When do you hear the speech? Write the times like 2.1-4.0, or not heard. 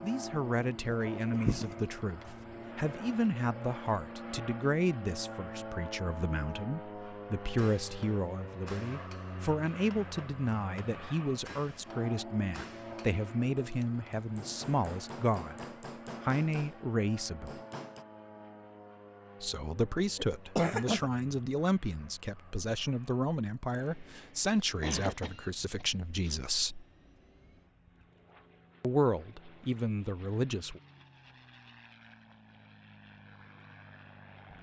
0.0-17.6, 19.4-26.9, 28.8-30.8.